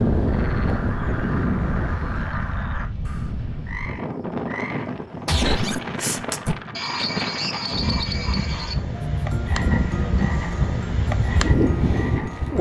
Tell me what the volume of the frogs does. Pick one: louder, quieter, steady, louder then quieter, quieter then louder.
louder then quieter.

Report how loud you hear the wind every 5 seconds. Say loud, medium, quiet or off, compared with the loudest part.
medium, medium, loud.